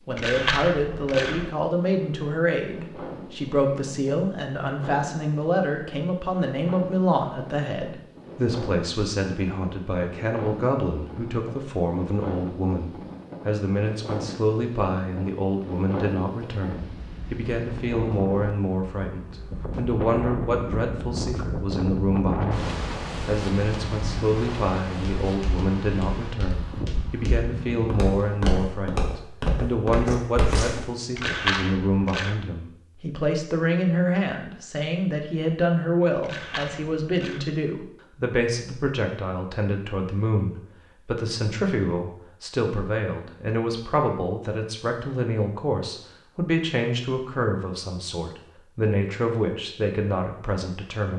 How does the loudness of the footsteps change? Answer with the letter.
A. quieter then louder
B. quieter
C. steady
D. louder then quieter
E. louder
E.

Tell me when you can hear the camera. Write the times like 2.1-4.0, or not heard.
0.1-1.5, 31.1-32.4, 36.2-37.5.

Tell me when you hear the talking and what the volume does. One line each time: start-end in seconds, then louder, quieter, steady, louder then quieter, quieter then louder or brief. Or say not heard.
0.1-51.1 steady.